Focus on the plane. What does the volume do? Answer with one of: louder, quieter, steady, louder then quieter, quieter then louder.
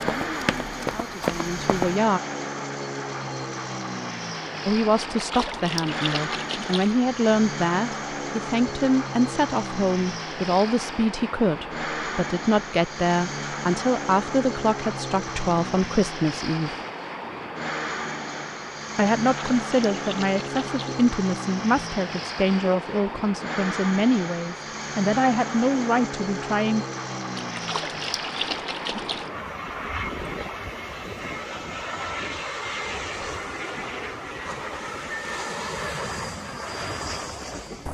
steady.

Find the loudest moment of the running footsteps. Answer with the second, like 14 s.
1 s.